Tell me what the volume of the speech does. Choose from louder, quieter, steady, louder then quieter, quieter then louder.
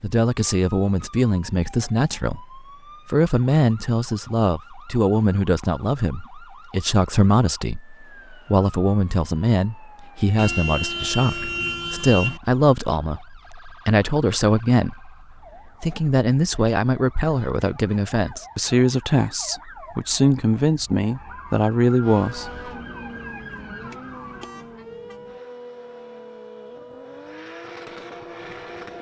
steady.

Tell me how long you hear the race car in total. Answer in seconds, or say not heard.
7 s.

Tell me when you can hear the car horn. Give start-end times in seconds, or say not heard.
10.3-12.4, 24.4-25.2.